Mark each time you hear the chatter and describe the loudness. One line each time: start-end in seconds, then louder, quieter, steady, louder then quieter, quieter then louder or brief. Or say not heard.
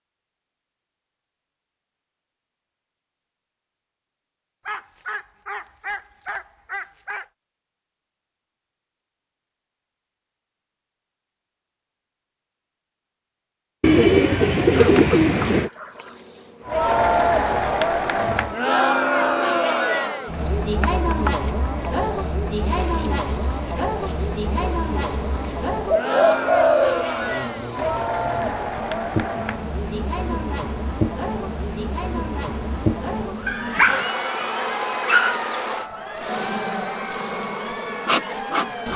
16.6-38.9 quieter.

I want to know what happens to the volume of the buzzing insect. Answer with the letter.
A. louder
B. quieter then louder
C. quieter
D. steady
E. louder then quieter
A.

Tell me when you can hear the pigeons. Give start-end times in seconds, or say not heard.
13.8-15.7, 25.8-27.4.